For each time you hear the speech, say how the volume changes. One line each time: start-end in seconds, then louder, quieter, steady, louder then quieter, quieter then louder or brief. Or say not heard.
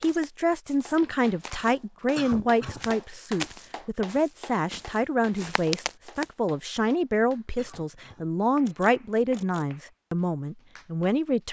0.0-11.4 steady.